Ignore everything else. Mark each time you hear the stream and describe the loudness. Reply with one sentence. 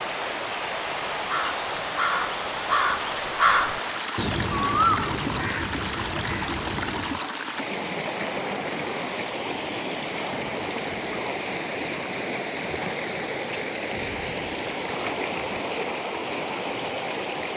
The stream can be heard from 0.0 to 17.5 s, at a steady volume.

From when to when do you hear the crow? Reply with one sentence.
The crow can be heard from 1.1 to 7.2 s.